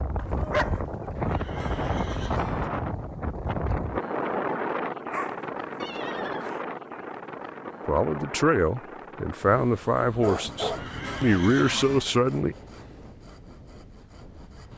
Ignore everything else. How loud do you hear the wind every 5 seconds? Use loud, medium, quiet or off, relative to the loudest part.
loud, medium, quiet.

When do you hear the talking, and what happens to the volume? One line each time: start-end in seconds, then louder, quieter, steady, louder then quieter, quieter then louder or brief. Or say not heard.
7.8-12.6 steady.